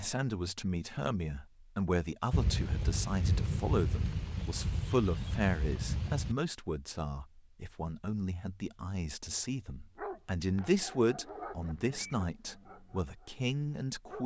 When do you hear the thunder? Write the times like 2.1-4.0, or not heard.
2.3-6.3.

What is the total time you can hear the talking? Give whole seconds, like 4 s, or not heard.
14 s.